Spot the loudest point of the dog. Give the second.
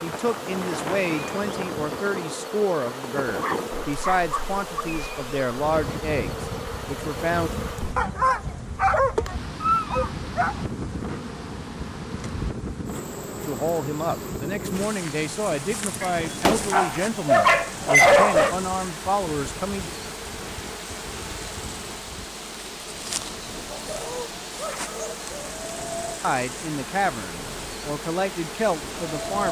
18 s.